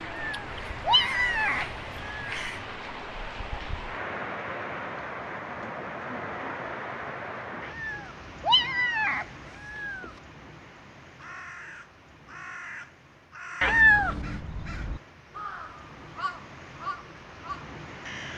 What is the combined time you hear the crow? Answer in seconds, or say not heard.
10 s.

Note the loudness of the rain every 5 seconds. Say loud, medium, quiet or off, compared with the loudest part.
loud, loud, quiet, medium.